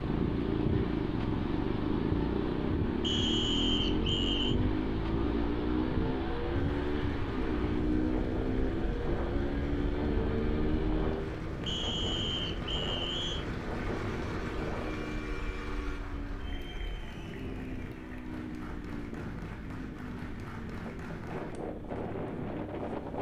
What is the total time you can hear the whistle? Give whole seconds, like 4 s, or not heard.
3 s.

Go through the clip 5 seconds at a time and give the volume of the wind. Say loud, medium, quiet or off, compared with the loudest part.
loud, loud, loud, medium, loud.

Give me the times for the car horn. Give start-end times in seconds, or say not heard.
14.1-16.0.